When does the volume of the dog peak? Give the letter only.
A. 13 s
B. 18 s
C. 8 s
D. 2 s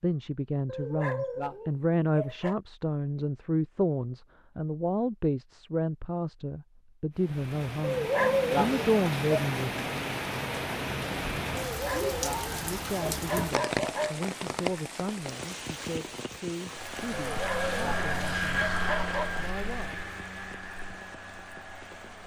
C.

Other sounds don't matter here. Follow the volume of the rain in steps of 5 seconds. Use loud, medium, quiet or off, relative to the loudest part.
off, loud, loud, medium, quiet.